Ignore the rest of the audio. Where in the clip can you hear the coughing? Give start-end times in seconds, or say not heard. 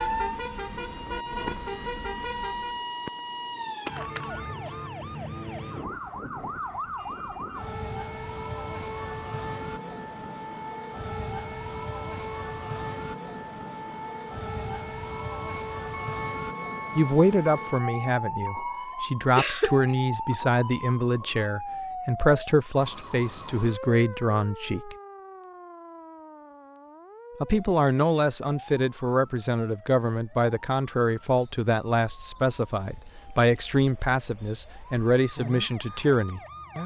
19.4-20.4.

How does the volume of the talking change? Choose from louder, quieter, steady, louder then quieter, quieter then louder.
steady.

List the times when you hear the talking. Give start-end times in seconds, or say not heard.
16.9-24.9, 27.4-36.4.